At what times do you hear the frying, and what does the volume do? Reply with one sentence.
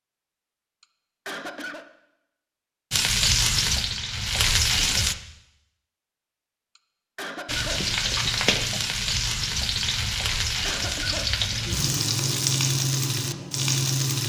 You can hear the frying briefly from 2.9 to 5.2 s; and from 7.5 to 14.2 s, at a steady volume.